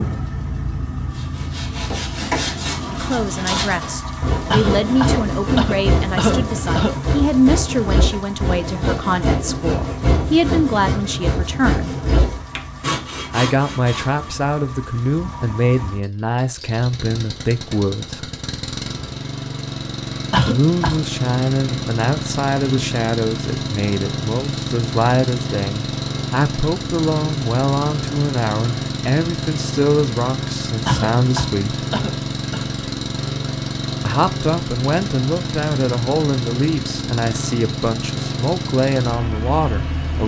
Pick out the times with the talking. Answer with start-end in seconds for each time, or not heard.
2.9-11.9, 13.3-18.3, 20.4-31.9, 34.0-40.2.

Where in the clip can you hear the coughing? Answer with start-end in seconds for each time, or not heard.
4.5-7.0, 20.3-21.0, 30.9-32.6.